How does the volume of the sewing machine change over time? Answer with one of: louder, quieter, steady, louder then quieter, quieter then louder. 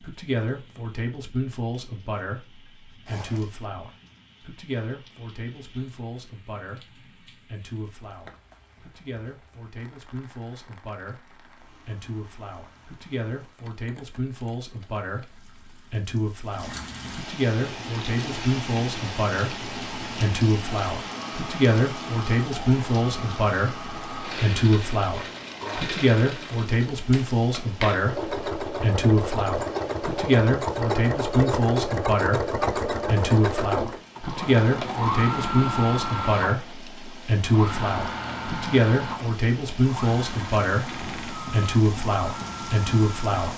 louder then quieter.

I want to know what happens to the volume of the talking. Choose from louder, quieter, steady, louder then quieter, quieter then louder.
louder.